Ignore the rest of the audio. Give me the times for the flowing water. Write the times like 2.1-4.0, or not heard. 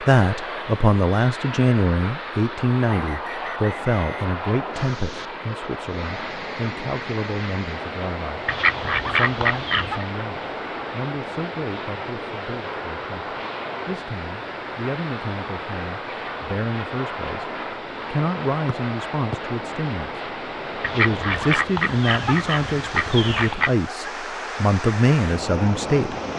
4.7-26.3.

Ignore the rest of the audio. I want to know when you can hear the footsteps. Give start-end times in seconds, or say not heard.
not heard.